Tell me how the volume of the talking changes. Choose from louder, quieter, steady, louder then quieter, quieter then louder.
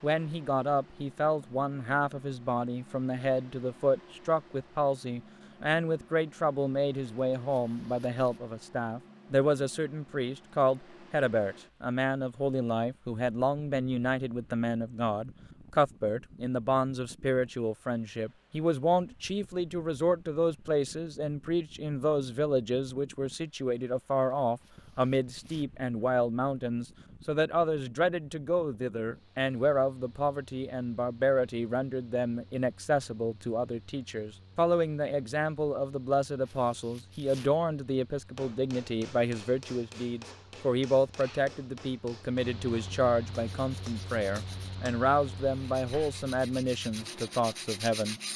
steady.